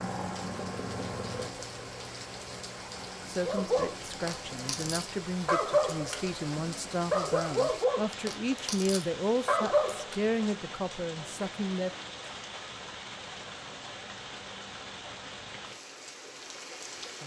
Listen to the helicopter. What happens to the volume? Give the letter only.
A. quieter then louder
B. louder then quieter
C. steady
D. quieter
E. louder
D.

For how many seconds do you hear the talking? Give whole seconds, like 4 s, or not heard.
9 s.